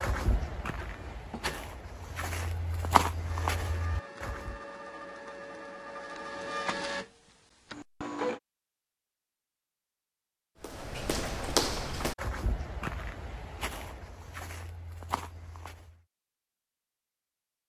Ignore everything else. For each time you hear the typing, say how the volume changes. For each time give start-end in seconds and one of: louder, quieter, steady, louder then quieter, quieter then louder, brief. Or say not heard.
not heard.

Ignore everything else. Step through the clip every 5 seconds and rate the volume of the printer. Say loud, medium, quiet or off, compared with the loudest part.
medium, loud, off, off.